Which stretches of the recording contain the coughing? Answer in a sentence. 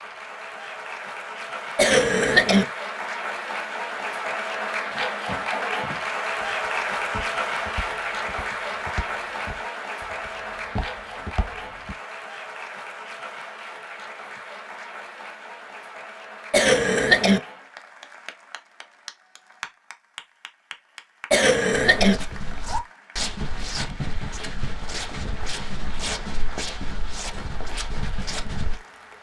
You can hear the coughing from 1.8 to 2.6 s, from 16.5 to 17.4 s and from 21.3 to 22.1 s.